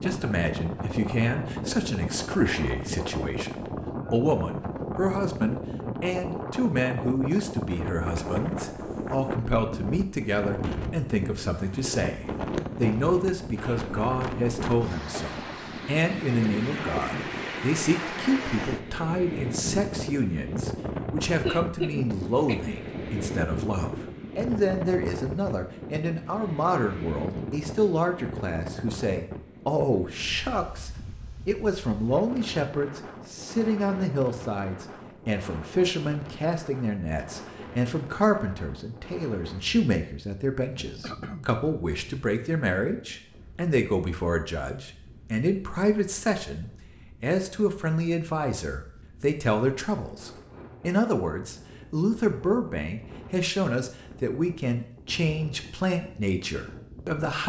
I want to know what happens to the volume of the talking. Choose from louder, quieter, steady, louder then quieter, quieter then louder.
steady.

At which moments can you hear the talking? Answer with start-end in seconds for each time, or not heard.
0.0-57.4.